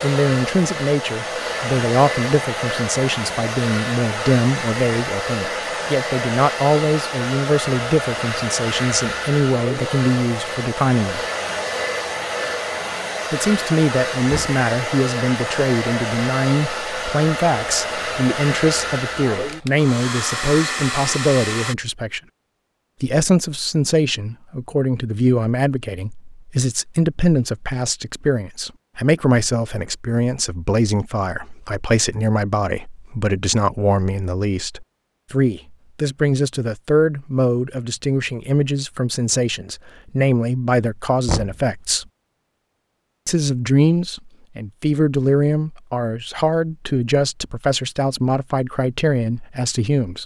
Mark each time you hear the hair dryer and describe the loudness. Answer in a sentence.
The hair dryer can be heard from 0.0 to 21.8 s, at a steady volume.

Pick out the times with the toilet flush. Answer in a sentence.
You can't hear the toilet flush here.